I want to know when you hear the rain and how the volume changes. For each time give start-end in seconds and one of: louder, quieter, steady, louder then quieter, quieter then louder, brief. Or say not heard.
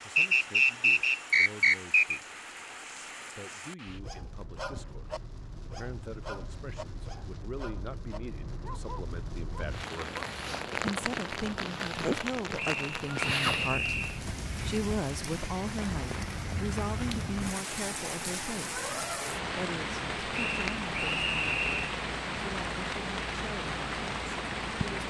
0.0-25.0 louder.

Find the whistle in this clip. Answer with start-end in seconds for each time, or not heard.
0.1-2.2, 12.6-14.2, 20.3-21.9.